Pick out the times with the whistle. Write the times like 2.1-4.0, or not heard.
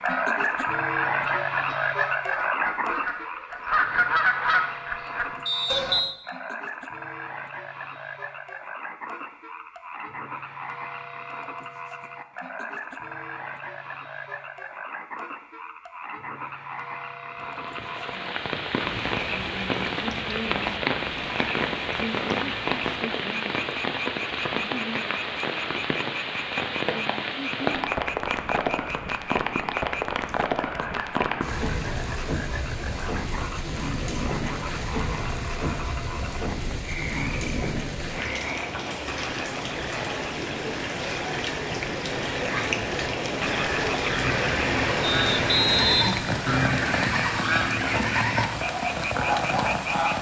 5.5-6.2, 45.0-47.0.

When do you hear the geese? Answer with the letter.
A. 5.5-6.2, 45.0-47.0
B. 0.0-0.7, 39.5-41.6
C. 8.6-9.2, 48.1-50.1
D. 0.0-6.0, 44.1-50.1
D.